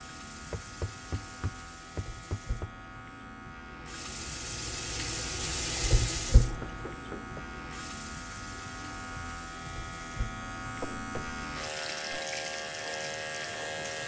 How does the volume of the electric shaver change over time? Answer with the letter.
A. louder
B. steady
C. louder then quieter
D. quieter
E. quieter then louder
A.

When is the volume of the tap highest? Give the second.
6 s.